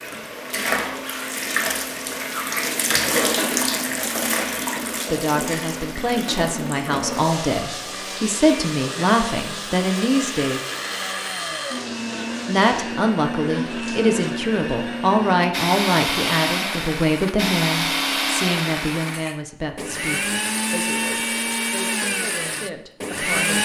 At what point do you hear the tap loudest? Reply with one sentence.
The loudest moment of the tap is at 3 seconds.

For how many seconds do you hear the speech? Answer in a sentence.
You can hear the speech for 17 seconds altogether.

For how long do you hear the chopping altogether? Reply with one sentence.
The chopping can't be heard in this clip.